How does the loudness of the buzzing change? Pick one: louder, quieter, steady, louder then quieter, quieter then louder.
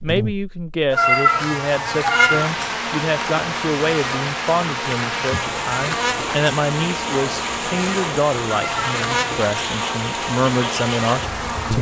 steady.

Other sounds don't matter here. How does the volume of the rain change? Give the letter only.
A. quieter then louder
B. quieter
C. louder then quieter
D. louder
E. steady
E.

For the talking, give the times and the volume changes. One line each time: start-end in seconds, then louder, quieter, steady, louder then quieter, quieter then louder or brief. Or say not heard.
0.0-11.7 steady.